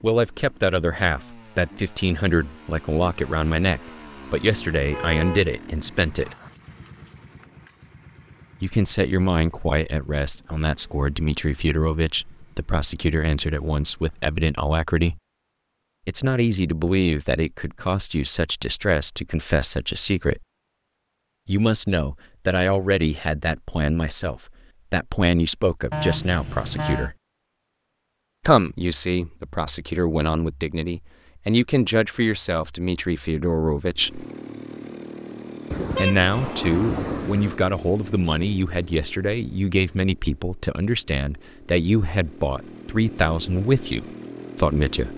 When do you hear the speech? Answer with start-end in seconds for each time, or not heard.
0.0-6.3, 8.6-15.2, 16.1-20.4, 21.4-27.1, 28.4-34.2, 36.0-45.1.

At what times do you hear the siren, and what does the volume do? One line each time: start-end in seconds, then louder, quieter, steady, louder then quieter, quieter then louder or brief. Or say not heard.
not heard.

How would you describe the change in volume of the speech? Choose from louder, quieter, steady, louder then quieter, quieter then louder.
steady.